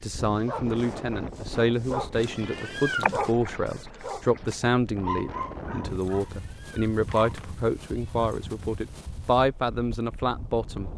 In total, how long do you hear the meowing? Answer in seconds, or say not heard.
3 s.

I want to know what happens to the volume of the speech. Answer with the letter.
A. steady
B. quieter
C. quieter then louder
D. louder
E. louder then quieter
A.